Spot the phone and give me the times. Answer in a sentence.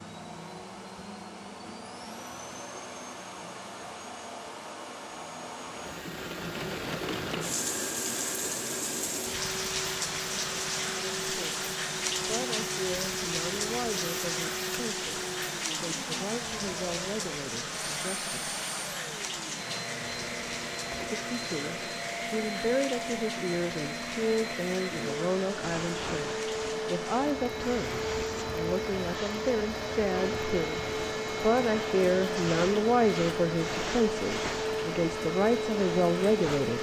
The phone can't be heard in this clip.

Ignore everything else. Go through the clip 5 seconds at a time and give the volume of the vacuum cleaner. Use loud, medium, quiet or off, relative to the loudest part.
medium, medium, medium, medium, medium, loud, loud, loud.